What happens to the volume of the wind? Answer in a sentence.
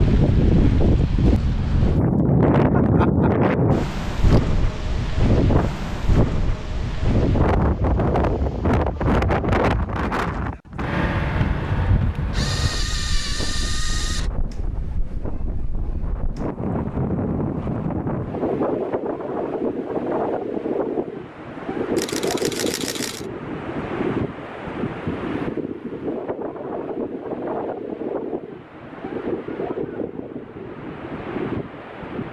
The volume of the wind goes down.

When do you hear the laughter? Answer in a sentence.
The laughter can't be heard in this clip.